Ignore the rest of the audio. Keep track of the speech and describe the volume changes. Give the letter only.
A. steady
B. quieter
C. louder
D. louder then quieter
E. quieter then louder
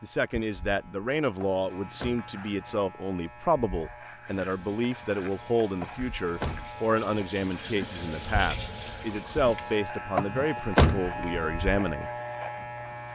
A.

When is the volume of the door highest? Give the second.
11 s.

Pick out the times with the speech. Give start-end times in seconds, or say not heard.
0.0-12.1.